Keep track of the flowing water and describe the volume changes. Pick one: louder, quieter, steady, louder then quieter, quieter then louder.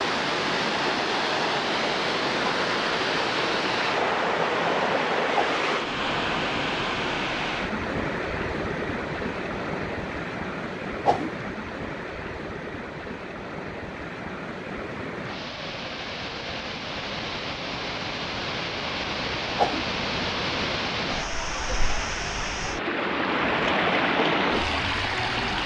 quieter then louder.